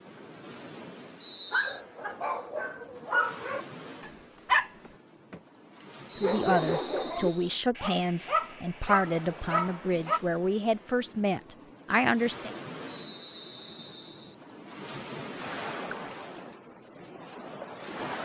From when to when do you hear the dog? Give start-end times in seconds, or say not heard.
1.5-5.4, 6.2-10.2.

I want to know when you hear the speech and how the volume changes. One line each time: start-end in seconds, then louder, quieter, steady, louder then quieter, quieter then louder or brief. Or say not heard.
6.2-12.5 steady.